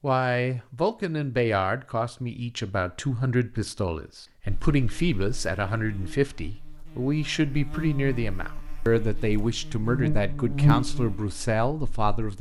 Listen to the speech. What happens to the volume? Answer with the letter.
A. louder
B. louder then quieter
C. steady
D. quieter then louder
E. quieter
C.